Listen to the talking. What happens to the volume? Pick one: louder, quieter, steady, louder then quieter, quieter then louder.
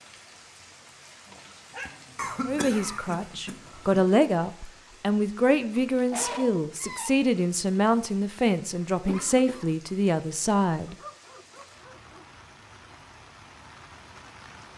steady.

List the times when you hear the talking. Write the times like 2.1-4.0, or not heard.
2.5-10.9.